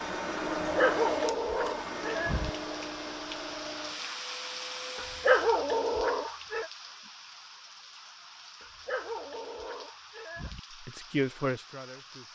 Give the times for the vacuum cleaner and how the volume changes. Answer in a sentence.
You can hear the vacuum cleaner from 0.0 to 5.5 s, getting quieter.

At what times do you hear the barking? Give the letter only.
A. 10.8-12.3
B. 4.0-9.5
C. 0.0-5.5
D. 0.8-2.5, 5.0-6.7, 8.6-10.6
D.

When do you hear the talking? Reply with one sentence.
The talking can be heard from 10.8 to 12.3 s.